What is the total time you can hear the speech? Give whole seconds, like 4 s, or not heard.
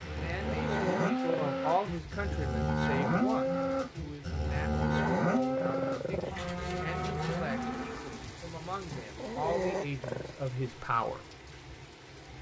11 s.